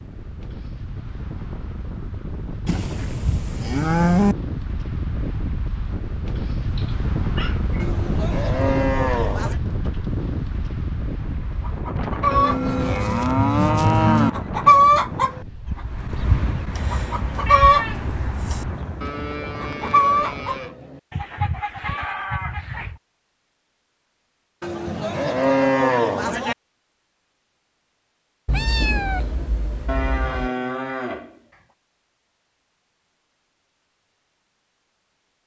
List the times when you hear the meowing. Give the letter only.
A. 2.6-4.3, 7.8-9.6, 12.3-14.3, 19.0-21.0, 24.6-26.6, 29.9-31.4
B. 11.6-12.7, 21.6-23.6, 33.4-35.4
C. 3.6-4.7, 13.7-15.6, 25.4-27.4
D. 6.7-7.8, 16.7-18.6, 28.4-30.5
D.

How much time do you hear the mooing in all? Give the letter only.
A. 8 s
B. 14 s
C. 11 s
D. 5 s
C.